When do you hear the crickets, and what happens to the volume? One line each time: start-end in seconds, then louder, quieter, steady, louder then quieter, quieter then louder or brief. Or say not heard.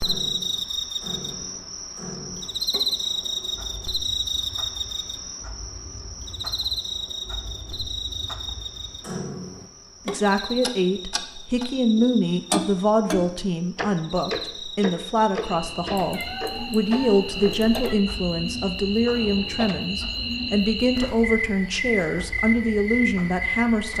0.0-23.9 quieter then louder.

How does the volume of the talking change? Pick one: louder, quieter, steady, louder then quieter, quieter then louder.
steady.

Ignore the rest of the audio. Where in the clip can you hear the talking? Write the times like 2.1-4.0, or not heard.
10.1-23.9.